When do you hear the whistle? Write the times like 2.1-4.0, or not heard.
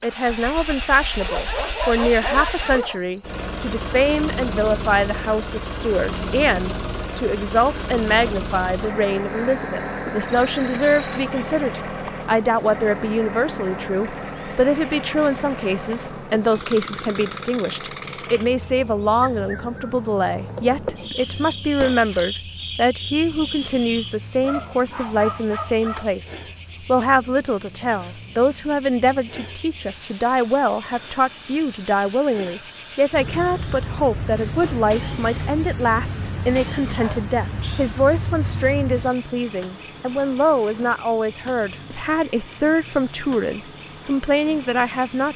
not heard.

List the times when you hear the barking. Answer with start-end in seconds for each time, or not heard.
1.2-3.0, 24.4-26.1, 37.0-38.0.